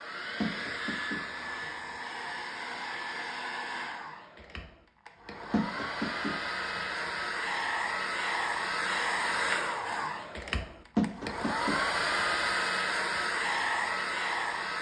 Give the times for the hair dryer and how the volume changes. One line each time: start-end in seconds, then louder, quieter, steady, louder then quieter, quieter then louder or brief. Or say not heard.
0.0-14.7 louder.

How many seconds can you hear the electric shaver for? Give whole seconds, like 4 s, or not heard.
not heard.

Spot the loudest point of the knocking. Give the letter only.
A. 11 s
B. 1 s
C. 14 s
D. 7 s
A.